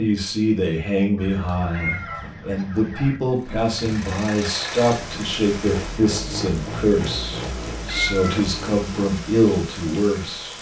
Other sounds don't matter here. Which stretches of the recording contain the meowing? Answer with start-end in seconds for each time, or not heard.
1.4-2.3, 7.8-8.4.